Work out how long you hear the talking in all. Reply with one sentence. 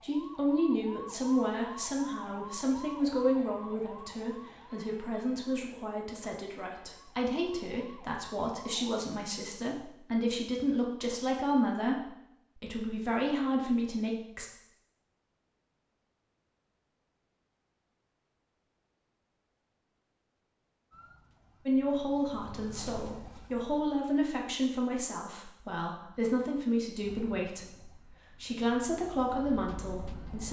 You can hear the talking for 23 seconds altogether.